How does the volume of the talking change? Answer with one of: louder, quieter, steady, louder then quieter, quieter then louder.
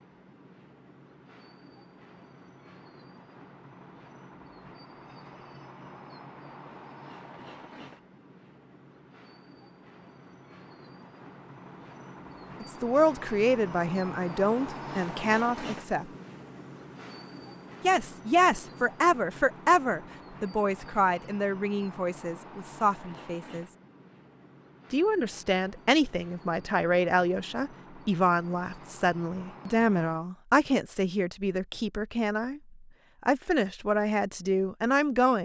steady.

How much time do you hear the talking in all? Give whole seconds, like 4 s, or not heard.
20 s.